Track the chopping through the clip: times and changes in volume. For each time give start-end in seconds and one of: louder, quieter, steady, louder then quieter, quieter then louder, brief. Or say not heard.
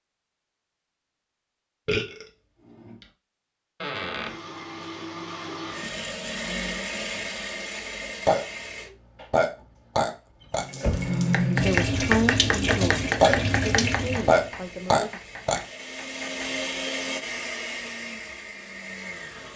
11.3-16.6 quieter.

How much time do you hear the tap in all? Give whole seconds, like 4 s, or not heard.
4 s.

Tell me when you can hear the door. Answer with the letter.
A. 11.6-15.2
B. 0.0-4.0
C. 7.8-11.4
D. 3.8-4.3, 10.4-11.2
D.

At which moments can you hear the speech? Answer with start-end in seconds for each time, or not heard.
11.6-15.2.